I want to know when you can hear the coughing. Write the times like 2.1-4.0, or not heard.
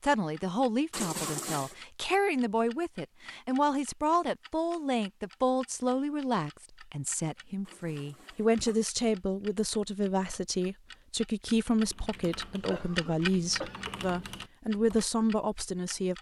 0.9-1.8, 7.7-8.8, 12.7-13.9.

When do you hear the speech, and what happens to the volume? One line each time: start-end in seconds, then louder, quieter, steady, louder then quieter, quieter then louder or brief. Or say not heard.
0.0-16.1 steady.